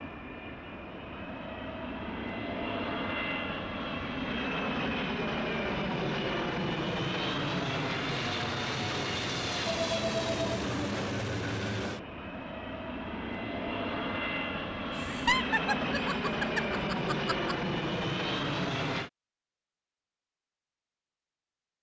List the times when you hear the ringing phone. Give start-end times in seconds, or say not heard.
9.7-10.6.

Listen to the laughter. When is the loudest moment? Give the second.
15 s.